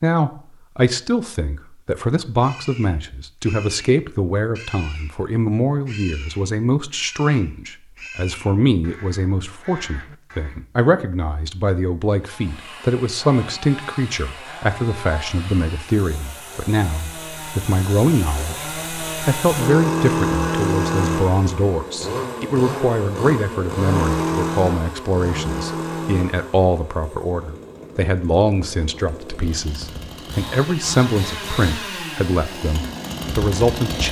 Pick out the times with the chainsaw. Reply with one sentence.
You can hear the chainsaw from 12.2 to 34.0 s.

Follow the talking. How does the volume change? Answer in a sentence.
The loudness of the talking stays about the same.